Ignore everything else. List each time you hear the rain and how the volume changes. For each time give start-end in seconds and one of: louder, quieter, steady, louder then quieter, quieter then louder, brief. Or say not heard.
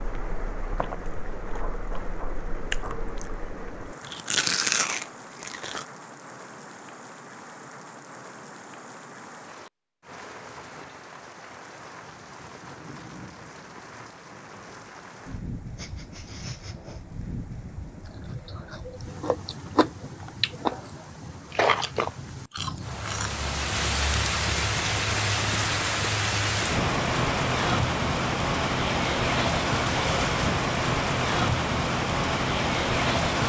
0.0-33.4 louder.